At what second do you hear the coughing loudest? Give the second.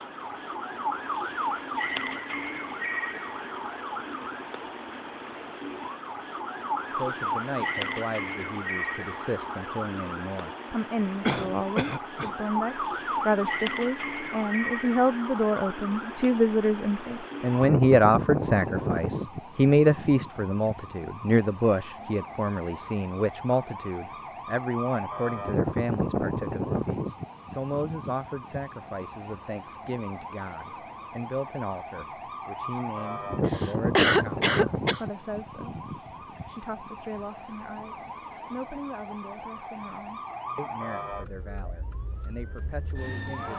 34 s.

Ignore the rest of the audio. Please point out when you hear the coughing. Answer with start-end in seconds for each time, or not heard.
11.2-12.3, 33.5-35.0.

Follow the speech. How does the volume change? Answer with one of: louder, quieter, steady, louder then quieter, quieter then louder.
louder then quieter.